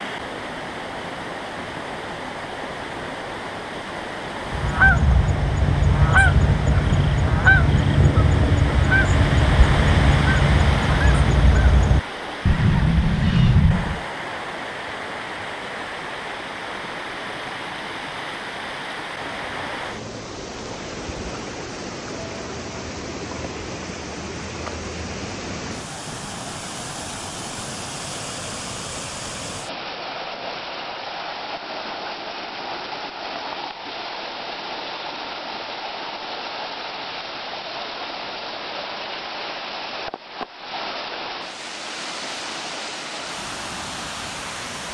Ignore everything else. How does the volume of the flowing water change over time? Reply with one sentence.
The volume of the flowing water stays about the same.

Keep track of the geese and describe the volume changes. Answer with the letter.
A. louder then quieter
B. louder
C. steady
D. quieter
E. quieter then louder
C.